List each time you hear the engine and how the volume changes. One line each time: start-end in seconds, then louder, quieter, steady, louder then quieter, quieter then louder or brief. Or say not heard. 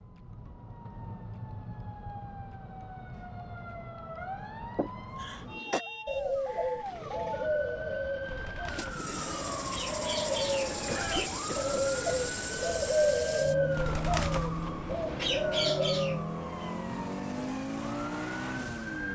8.7-19.1 steady.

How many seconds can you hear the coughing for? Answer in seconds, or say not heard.
2 s.